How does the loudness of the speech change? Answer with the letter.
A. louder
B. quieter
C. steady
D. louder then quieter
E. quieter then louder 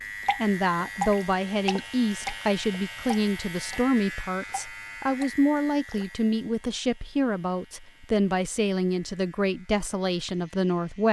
C.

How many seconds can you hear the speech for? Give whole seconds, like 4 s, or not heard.
11 s.